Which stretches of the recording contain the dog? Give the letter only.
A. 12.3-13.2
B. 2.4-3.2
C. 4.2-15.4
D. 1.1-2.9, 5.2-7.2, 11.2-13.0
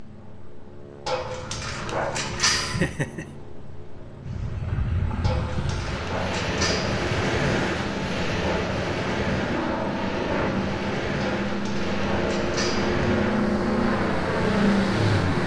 D.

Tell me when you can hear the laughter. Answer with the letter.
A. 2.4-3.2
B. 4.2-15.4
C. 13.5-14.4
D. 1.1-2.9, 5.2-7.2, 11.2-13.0
A.